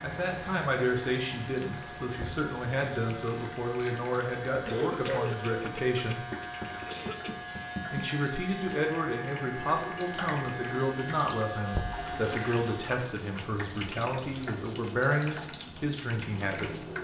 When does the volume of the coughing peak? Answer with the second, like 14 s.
5 s.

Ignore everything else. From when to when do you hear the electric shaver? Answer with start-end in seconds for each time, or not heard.
0.0-13.0.